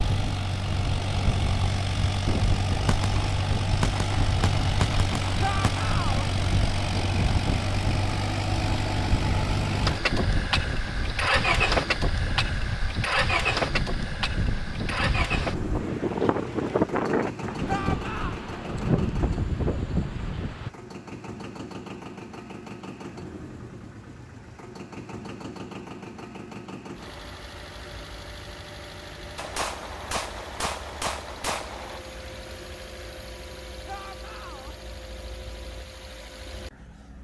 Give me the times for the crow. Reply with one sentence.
You can't hear the crow here.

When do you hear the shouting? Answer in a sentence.
You can hear the shouting from 5.4 to 6.3 s, from 17.6 to 18.4 s and from 33.9 to 34.8 s.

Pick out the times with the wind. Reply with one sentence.
You can hear the wind from 0.0 to 20.7 s.